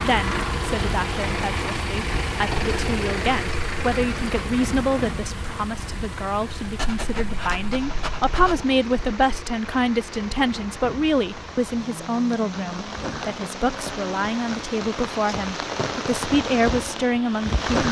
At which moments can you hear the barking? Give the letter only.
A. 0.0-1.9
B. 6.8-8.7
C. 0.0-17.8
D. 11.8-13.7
B.